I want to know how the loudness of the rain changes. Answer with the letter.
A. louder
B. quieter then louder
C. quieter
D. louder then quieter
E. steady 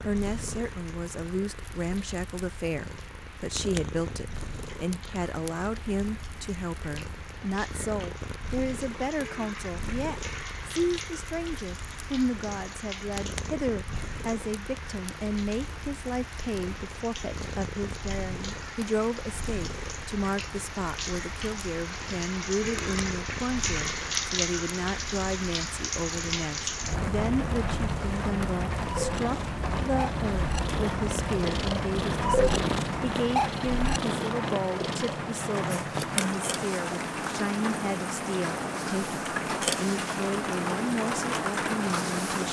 A.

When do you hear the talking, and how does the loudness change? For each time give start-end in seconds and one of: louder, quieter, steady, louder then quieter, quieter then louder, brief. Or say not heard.
0.0-42.4 steady.